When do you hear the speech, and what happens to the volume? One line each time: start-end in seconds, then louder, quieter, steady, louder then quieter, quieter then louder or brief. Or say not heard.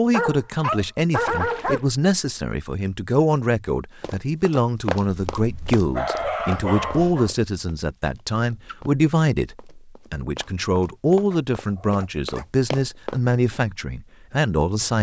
0.0-14.9 steady.